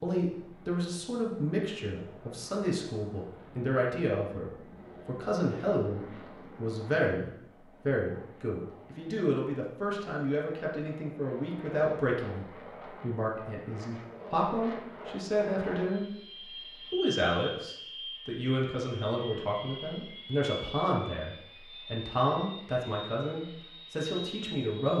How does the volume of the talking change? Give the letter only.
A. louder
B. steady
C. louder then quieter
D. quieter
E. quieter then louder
B.